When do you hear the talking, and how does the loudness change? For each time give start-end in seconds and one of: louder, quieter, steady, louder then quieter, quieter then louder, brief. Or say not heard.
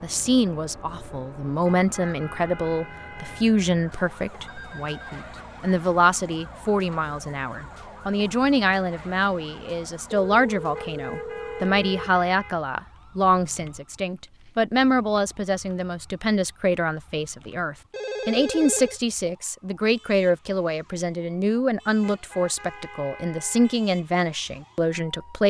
0.0-25.4 steady.